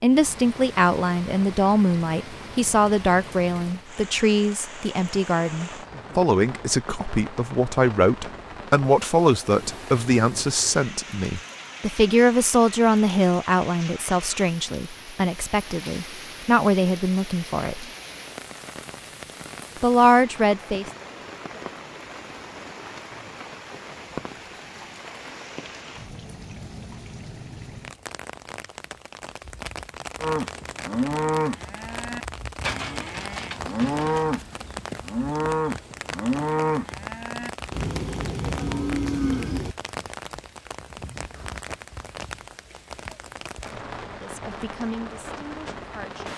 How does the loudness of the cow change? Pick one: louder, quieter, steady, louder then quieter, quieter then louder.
steady.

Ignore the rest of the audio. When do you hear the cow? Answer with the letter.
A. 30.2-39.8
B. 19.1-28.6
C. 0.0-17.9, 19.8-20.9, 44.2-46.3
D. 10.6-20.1
A.